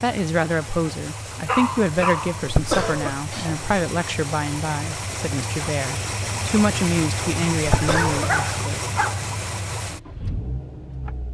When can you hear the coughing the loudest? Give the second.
3 s.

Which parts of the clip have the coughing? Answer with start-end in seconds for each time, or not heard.
2.5-3.7, 7.7-8.3.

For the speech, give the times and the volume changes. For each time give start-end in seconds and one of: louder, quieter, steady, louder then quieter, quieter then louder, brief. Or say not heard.
0.0-8.8 steady.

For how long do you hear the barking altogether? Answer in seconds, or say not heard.
3 s.